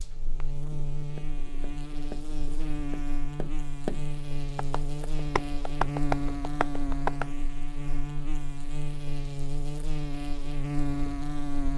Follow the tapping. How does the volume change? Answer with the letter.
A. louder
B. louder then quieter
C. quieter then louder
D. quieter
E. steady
A.